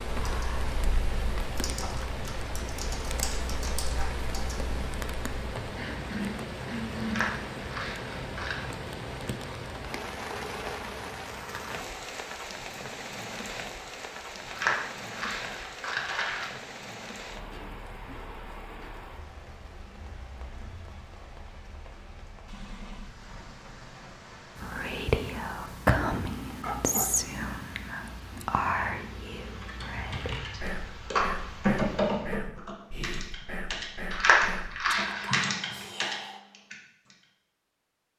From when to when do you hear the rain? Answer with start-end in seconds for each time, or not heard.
0.0-32.4.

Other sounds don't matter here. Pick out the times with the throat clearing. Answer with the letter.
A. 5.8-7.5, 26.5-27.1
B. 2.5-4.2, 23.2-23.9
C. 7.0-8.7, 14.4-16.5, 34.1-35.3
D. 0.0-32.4
A.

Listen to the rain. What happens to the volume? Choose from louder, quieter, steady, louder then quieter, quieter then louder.
quieter.